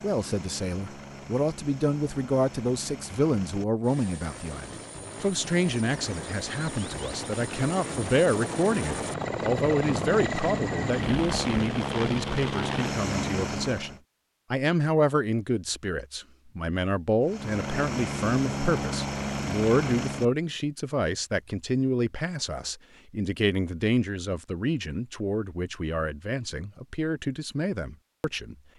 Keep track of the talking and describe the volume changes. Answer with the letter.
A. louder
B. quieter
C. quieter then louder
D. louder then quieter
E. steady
E.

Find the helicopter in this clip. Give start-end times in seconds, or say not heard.
0.0-14.0, 17.2-20.2.